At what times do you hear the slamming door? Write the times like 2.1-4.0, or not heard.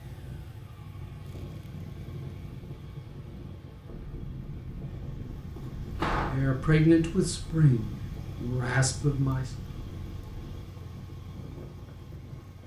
5.5-6.4.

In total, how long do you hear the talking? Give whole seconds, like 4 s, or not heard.
3 s.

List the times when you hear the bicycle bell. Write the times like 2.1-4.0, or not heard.
not heard.